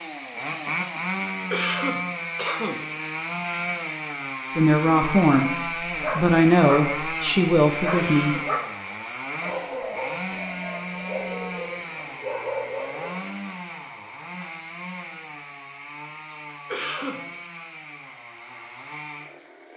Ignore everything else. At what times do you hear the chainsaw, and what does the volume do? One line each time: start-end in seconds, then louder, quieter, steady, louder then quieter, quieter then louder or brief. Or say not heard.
0.0-19.7 quieter.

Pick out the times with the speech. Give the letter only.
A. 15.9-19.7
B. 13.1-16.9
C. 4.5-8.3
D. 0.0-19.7
C.